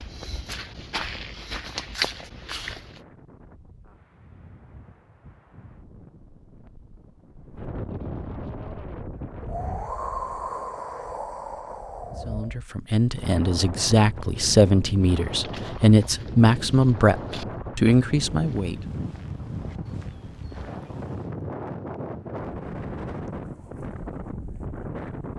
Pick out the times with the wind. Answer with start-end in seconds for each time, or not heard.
0.0-25.3.